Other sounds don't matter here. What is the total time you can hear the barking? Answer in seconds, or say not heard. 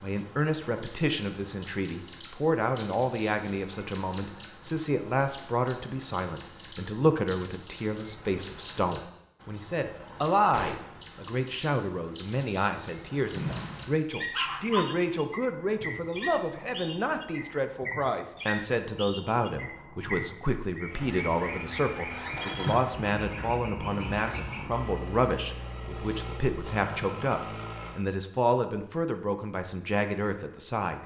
2 s.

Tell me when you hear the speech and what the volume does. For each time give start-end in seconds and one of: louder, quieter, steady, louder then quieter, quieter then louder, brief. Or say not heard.
0.0-31.0 steady.